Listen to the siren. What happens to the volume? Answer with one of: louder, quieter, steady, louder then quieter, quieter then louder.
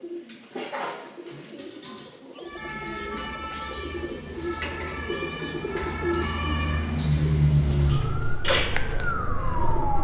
louder then quieter.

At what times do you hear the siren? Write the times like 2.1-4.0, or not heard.
2.4-10.0.